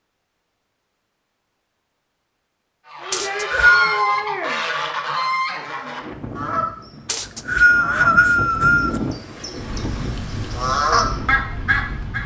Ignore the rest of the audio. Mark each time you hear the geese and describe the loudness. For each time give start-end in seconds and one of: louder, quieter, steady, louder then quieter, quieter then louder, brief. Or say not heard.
2.9-12.2 quieter then louder.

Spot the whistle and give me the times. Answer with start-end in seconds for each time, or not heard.
3.1-4.0, 7.0-9.0.